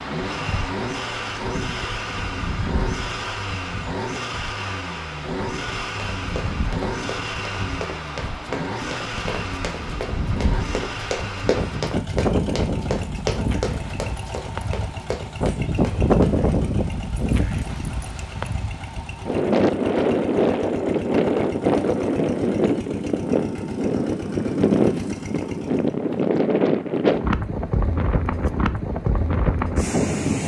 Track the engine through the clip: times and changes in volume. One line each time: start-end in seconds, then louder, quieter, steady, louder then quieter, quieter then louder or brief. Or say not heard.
0.0-25.9 quieter.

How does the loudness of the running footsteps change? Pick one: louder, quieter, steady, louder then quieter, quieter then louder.
louder then quieter.